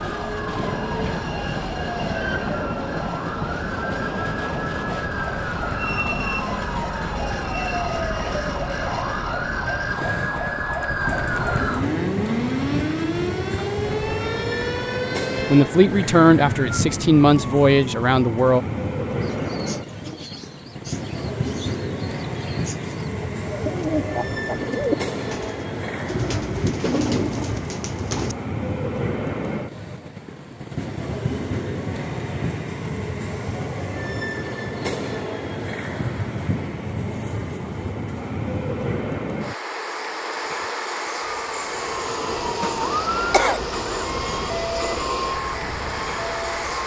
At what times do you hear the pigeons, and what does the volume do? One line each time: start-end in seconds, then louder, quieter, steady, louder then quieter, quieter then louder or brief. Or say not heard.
19.2-28.4 louder.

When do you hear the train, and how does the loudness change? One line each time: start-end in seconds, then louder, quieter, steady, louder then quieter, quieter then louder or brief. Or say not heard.
0.0-46.8 steady.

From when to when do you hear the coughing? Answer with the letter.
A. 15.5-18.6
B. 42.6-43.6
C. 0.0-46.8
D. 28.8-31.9
B.